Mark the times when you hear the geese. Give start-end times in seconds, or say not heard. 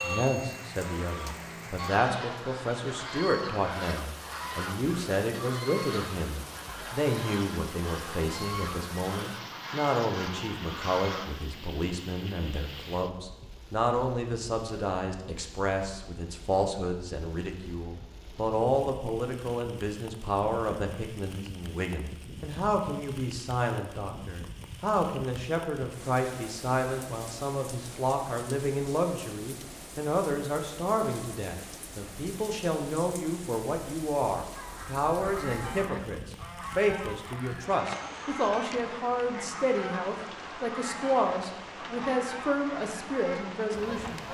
0.0-11.3, 34.5-44.2.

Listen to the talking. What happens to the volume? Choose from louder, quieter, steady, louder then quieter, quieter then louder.
steady.